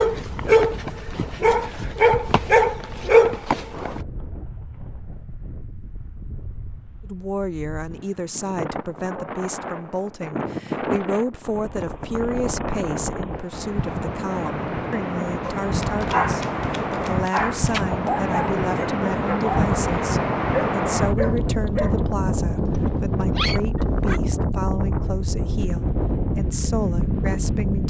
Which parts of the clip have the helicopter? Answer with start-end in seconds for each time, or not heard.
not heard.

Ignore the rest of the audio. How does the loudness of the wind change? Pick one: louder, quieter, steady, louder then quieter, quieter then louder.
louder.